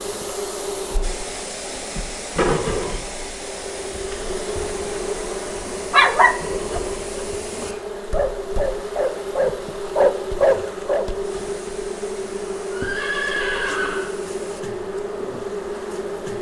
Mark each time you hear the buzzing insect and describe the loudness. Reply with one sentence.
The buzzing insect can be heard from 0.0 to 16.3 s, at a steady volume.